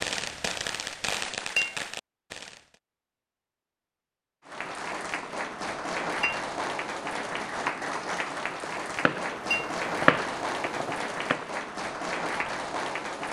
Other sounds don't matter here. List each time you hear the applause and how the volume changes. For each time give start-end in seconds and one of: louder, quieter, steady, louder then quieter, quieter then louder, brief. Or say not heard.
4.5-13.2 steady.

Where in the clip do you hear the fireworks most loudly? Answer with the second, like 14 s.
10 s.